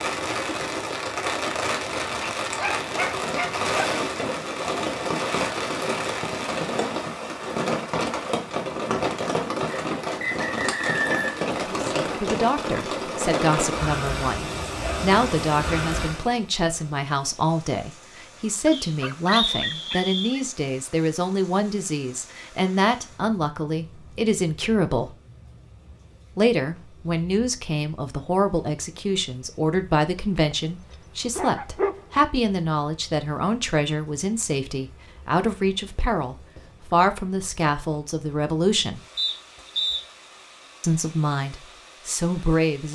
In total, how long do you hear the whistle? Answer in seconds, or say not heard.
4 s.